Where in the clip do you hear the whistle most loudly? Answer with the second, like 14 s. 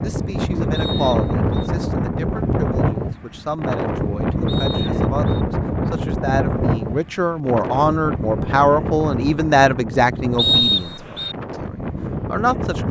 11 s.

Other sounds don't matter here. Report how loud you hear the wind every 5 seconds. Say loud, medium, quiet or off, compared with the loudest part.
loud, loud, medium.